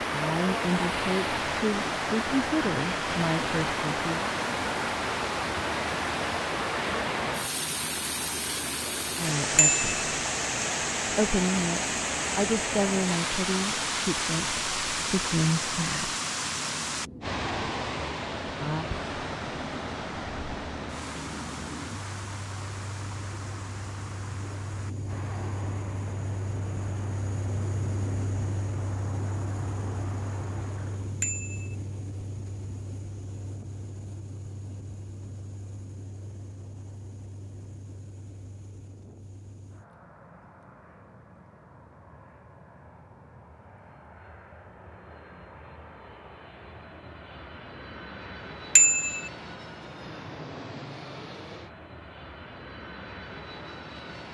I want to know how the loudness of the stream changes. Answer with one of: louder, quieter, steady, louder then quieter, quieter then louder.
quieter.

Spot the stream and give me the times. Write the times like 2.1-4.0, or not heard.
0.0-31.2.